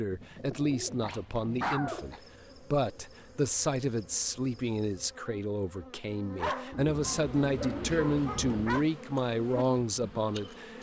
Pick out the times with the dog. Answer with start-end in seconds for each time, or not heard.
0.7-2.2, 6.3-8.8.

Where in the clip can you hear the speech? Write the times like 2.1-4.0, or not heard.
0.0-10.7.